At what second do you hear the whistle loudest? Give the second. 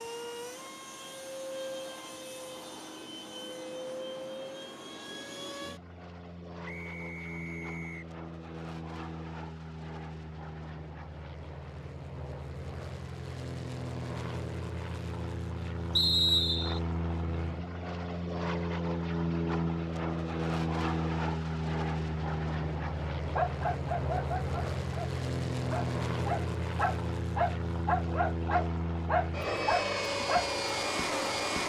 16 s.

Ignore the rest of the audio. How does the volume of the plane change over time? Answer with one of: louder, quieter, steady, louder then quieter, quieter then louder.
louder.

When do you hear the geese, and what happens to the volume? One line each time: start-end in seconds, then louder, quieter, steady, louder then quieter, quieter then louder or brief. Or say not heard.
not heard.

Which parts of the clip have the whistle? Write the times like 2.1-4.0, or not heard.
6.7-8.1, 15.9-16.8.